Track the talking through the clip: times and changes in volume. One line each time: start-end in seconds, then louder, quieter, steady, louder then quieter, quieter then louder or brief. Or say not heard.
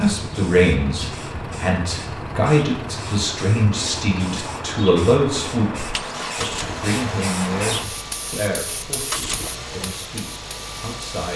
0.0-11.3 quieter.